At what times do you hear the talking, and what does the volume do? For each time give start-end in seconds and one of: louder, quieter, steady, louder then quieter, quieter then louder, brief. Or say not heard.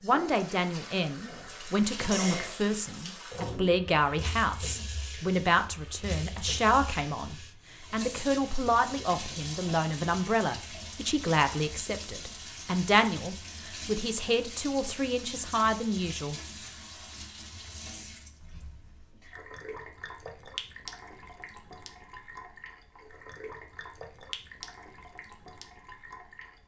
0.0-16.4 steady.